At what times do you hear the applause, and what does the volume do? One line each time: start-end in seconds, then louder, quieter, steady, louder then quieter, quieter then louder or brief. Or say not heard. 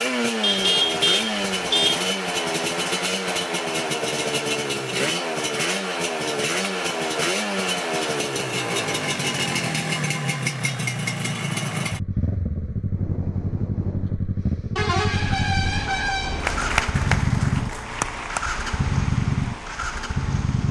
16.4-20.6 quieter.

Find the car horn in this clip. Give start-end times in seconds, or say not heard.
0.4-2.0, 8.5-10.6, 14.8-16.8.